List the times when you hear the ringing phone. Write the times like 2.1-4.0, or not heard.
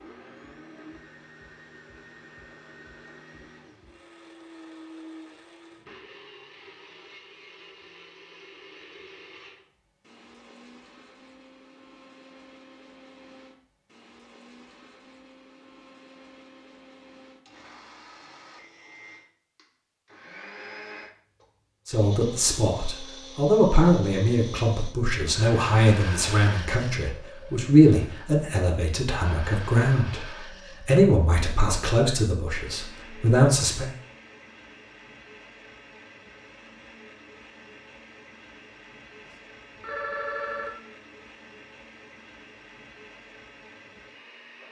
39.2-40.7.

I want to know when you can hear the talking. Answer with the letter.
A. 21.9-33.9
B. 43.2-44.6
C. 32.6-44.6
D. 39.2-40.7
A.